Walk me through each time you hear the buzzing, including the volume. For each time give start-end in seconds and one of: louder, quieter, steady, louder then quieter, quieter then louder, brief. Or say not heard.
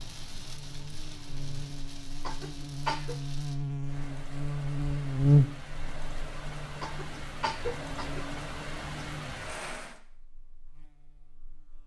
0.0-11.8 louder then quieter.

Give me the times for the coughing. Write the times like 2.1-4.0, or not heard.
2.2-3.1, 6.8-8.2.